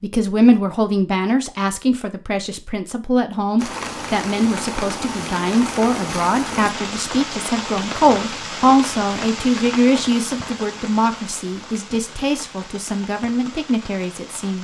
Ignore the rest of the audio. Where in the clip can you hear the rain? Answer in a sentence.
The rain can be heard from 3.5 to 14.5 s.